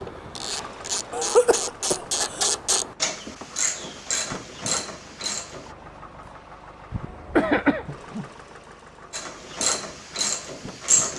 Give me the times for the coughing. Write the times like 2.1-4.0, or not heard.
1.1-2.5, 6.9-8.2.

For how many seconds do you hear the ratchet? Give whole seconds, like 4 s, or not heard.
8 s.